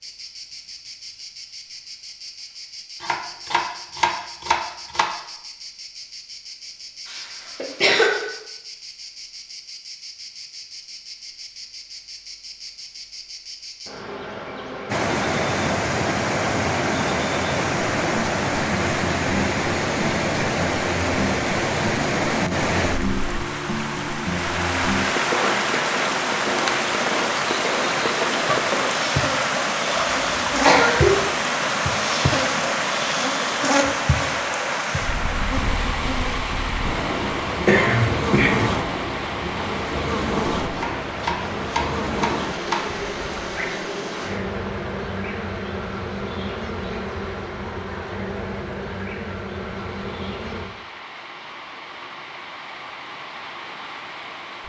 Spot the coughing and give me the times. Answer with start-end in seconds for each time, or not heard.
7.0-8.2, 29.9-31.2, 37.2-38.6.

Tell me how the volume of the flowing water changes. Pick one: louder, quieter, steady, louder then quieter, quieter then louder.
quieter.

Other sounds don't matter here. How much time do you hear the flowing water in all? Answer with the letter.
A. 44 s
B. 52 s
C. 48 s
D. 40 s
D.